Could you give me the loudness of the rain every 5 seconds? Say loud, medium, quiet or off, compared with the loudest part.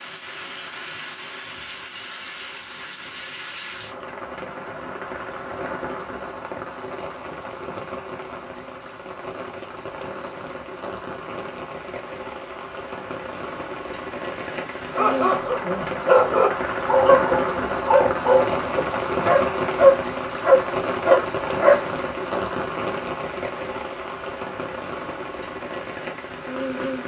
medium, medium, medium, loud, loud, medium.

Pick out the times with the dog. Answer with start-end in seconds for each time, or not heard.
14.9-21.9.